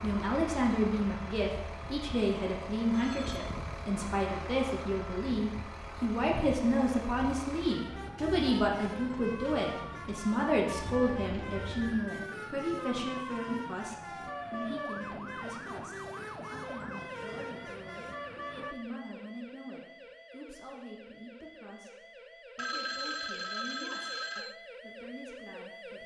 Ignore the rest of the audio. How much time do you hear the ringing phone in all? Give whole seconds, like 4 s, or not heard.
4 s.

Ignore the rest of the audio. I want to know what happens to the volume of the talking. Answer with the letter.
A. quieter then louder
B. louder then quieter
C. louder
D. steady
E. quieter
E.